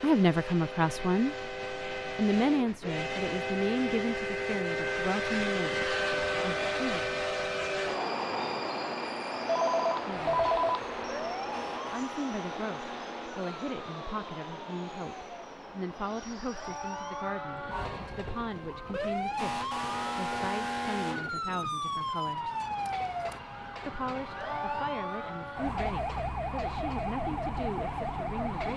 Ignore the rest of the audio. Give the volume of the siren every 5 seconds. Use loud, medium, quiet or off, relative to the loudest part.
off, off, medium, loud, loud, loud.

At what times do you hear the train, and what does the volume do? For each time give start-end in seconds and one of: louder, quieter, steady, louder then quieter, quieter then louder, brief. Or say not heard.
0.0-28.7 quieter.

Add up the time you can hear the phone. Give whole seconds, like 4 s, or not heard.
2 s.